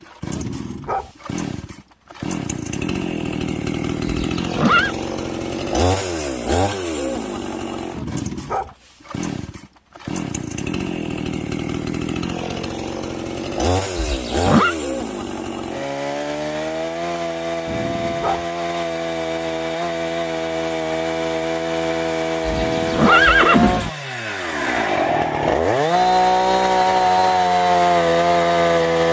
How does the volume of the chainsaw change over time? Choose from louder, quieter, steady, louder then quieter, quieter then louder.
louder.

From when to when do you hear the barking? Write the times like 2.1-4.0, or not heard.
0.3-1.1, 8.0-8.8, 17.6-18.4, 22.5-23.3.